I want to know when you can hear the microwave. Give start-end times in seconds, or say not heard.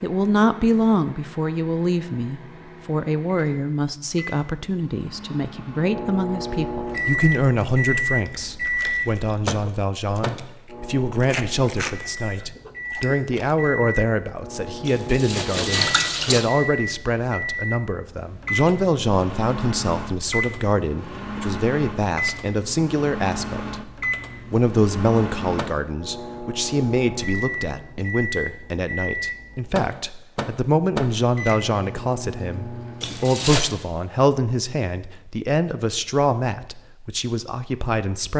0.0-33.4.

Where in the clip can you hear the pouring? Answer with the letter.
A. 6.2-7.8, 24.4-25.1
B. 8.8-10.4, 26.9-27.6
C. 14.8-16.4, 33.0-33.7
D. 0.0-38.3
C.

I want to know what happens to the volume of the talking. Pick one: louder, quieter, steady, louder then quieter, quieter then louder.
steady.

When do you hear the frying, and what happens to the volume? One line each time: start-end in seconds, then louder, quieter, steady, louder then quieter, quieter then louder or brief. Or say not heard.
not heard.